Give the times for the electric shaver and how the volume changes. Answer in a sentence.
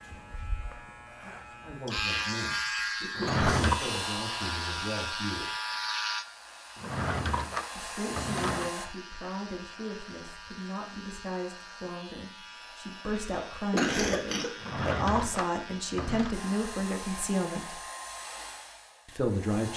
The electric shaver can be heard from 0.0 to 16.8 s, getting quieter.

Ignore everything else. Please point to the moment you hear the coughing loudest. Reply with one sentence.
The loudest moment of the coughing is at 14 seconds.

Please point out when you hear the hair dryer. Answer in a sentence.
The hair dryer can be heard from 3.5 to 8.9 s and from 16.3 to 19.7 s.